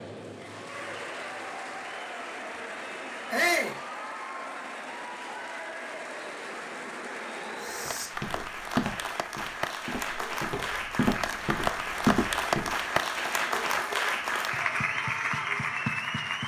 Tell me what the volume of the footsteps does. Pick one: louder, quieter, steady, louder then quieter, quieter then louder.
quieter then louder.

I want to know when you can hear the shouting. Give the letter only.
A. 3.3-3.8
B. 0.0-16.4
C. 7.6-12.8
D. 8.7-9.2
A.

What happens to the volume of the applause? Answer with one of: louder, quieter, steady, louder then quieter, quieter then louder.
louder.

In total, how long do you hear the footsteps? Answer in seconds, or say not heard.
5 s.